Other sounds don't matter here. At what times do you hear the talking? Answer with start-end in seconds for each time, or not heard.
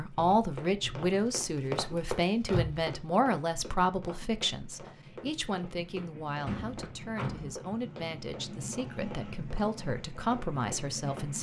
0.0-11.3.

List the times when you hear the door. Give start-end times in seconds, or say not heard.
2.5-2.9, 6.5-7.5.